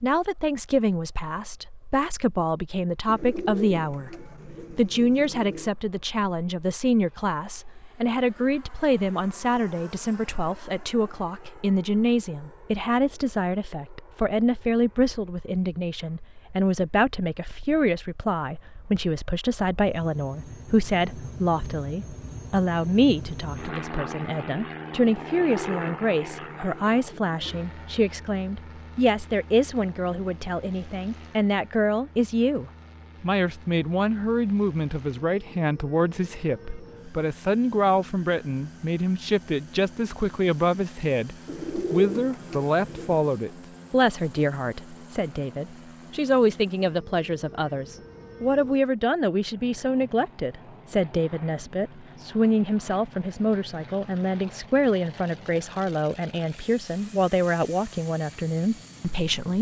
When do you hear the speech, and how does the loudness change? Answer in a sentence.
You can hear the speech from 0.0 to 4.1 s, getting quieter then louder; and from 4.7 to 59.5 s, at a steady volume.